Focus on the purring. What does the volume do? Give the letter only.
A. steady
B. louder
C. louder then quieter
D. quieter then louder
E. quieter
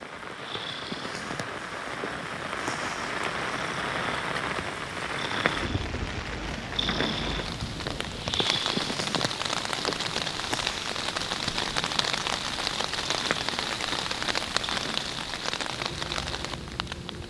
C.